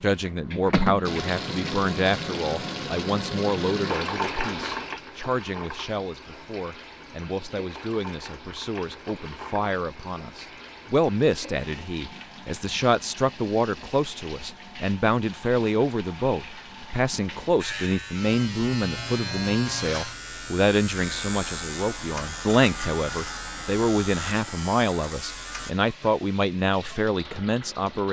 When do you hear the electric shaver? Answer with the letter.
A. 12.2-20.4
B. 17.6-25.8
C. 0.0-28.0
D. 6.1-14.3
B.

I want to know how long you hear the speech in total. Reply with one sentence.
You can hear the speech for 28 seconds altogether.